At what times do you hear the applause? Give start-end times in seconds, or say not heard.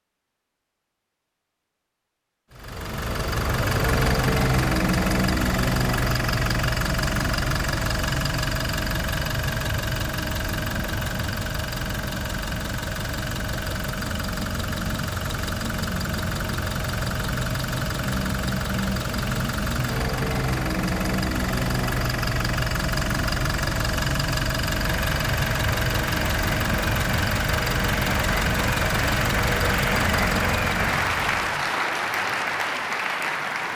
24.8-33.7.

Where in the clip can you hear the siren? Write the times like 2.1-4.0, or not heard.
not heard.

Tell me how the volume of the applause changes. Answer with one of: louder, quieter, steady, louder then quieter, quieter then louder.
louder.